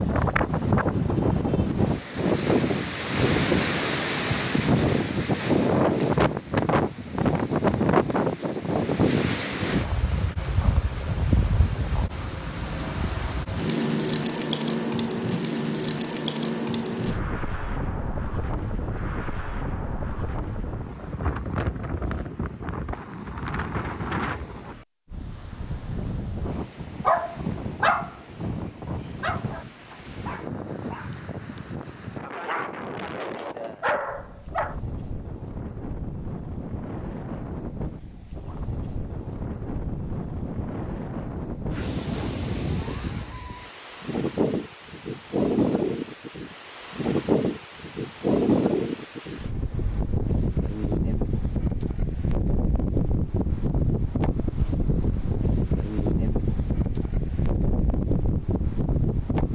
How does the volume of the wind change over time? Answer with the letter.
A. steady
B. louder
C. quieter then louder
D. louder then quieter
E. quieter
C.